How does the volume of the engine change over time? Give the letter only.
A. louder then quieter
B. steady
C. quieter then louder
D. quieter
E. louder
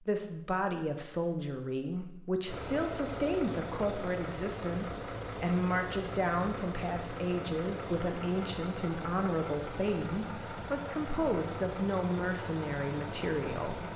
B.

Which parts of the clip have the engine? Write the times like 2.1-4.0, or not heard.
2.5-13.9.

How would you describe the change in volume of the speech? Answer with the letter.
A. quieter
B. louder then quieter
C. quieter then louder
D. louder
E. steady
E.